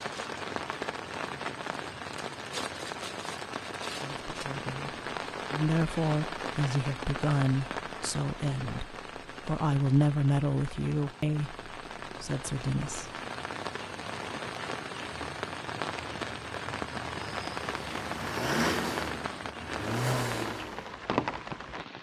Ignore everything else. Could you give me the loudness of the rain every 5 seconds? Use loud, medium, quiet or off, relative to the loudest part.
loud, loud, medium, loud, loud.